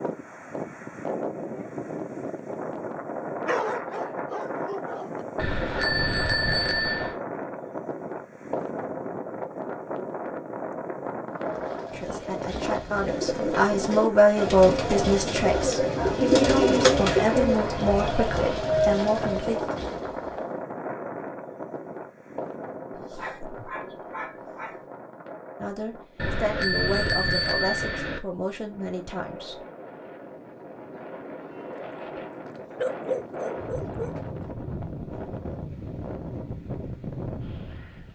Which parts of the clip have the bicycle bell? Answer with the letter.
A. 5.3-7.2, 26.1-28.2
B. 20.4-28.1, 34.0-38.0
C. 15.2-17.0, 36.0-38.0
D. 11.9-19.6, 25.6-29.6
A.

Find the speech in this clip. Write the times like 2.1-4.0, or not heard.
11.9-19.6, 25.6-29.6.